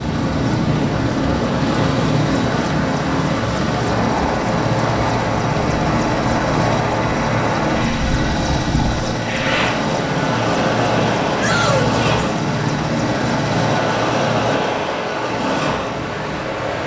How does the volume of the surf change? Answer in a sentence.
The volume of the surf stays about the same.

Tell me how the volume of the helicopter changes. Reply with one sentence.
The volume of the helicopter stays about the same.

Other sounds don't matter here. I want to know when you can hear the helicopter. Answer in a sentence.
You can hear the helicopter from 0.0 to 14.6 s.